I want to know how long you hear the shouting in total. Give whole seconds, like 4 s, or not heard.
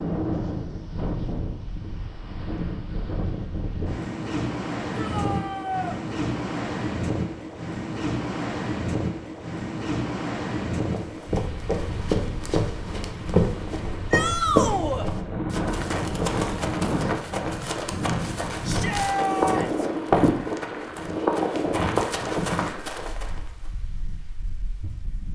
3 s.